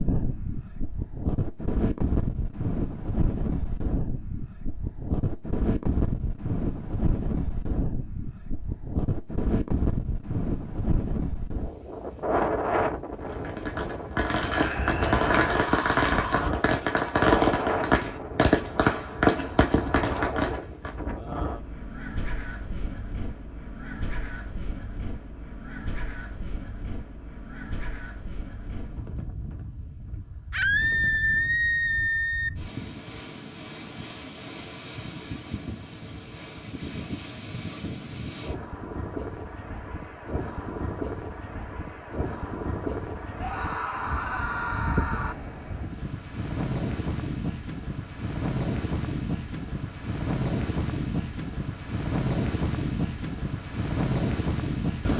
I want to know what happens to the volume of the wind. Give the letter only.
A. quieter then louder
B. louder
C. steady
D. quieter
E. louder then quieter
A.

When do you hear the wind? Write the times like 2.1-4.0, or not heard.
0.0-55.1.